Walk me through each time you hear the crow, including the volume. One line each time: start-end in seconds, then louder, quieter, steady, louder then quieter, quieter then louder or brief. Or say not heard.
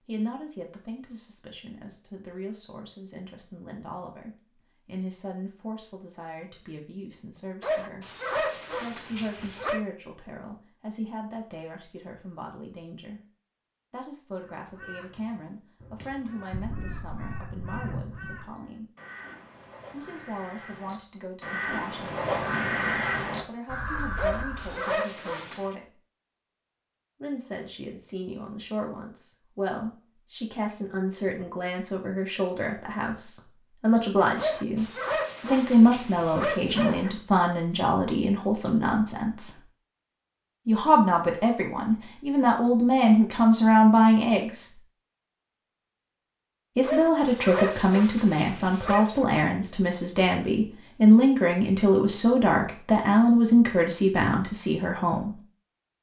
14.6-24.8 louder.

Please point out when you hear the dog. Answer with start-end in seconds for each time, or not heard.
7.6-9.8, 24.1-25.8, 34.4-37.1, 46.8-49.2.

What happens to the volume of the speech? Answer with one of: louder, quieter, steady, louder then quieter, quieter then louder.
louder.